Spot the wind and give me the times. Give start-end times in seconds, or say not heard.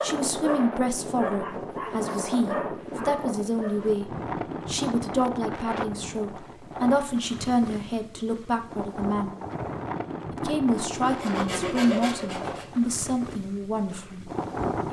0.0-14.8.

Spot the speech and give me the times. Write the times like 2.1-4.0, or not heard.
0.0-9.3, 10.3-14.3.